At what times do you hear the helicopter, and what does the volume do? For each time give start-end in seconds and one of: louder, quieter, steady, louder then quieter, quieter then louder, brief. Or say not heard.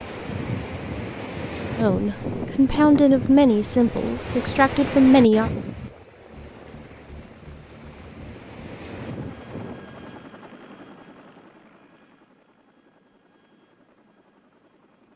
6.2-15.1 quieter.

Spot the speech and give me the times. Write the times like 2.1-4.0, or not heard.
1.8-5.5.